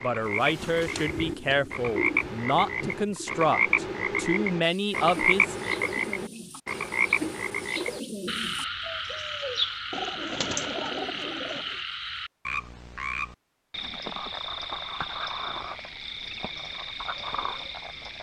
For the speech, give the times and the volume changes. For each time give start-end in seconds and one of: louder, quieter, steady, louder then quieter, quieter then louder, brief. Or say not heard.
0.0-5.5 steady.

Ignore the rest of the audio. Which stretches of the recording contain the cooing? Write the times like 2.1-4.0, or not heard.
0.2-11.8.